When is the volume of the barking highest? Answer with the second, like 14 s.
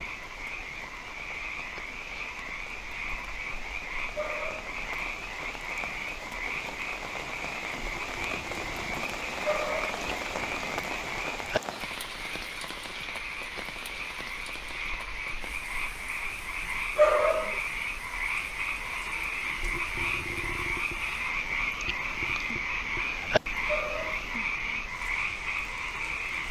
17 s.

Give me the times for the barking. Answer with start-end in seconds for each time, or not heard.
4.1-4.7, 9.4-10.0, 16.9-17.6, 23.6-24.3.